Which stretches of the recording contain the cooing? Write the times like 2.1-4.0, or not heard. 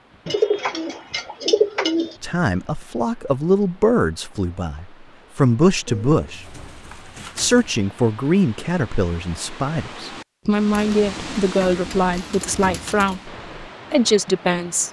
0.2-2.1, 5.8-7.8, 10.7-13.2.